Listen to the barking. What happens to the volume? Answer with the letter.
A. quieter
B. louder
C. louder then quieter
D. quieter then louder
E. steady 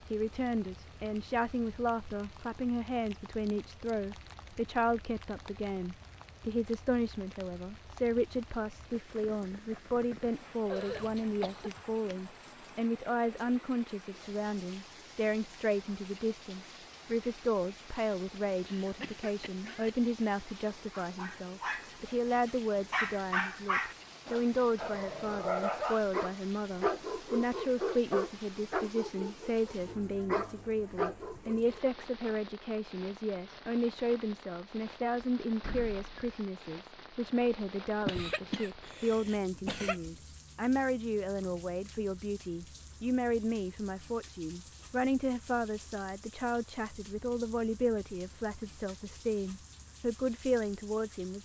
E.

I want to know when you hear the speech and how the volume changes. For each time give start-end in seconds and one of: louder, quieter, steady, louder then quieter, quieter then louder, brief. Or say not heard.
0.1-51.4 steady.